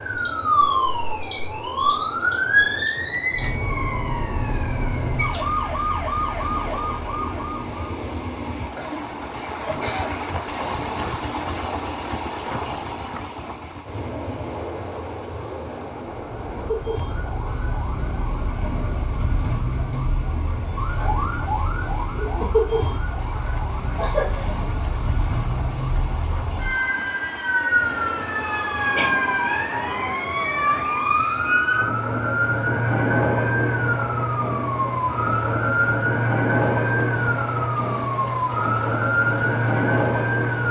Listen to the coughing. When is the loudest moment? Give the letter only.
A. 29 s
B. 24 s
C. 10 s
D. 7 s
B.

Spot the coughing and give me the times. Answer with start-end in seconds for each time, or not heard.
8.8-10.7, 23.9-24.5, 28.2-29.1.